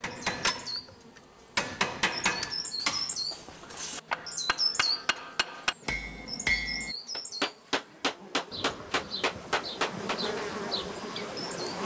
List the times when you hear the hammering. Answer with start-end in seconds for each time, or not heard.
0.0-10.4.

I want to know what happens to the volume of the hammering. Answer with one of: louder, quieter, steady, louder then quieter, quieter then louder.
quieter then louder.